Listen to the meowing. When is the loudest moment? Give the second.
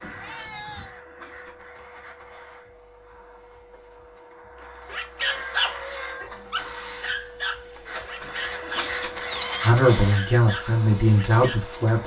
9 s.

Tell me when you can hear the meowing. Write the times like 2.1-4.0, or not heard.
0.0-0.9, 5.2-6.3, 8.9-9.7.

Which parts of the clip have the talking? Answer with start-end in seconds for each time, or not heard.
9.6-12.0.